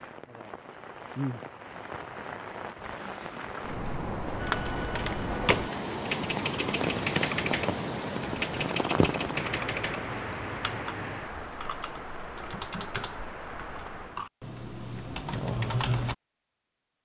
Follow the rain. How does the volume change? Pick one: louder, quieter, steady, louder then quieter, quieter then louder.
louder then quieter.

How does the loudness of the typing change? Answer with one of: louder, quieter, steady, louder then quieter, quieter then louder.
quieter then louder.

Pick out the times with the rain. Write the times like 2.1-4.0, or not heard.
0.0-14.3.